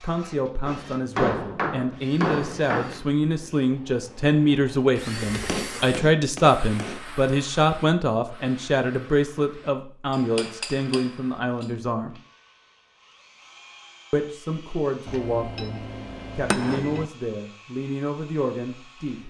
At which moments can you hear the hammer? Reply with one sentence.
The hammer can be heard from 0.7 to 3.0 s, from 5.5 to 7.0 s, from 10.1 to 11.7 s and from 15.1 to 17.1 s.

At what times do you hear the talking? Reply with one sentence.
The talking can be heard from 0.0 to 12.2 s and from 14.1 to 19.2 s.